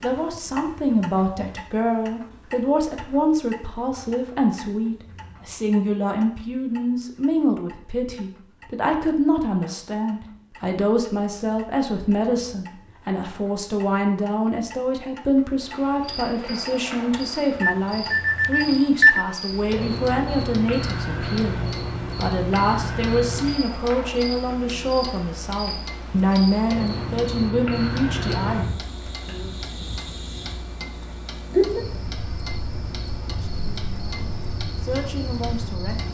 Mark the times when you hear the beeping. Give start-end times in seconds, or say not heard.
17.6-19.2.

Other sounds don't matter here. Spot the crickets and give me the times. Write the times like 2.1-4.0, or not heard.
15.6-36.0.